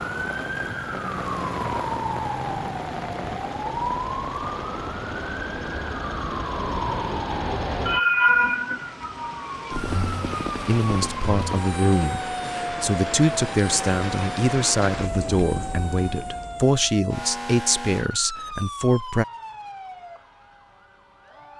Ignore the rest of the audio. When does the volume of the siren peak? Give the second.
8 s.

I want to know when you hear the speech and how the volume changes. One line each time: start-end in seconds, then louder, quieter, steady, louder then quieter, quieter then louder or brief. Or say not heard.
10.7-19.2 steady.